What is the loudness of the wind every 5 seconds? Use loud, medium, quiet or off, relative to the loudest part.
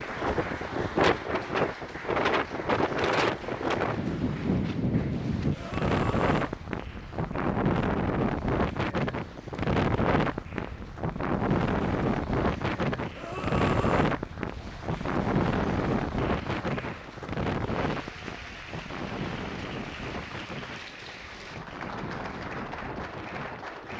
loud, loud, loud, loud, quiet.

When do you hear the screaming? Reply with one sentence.
The screaming can be heard from 5.5 to 6.5 s and from 13.2 to 14.1 s.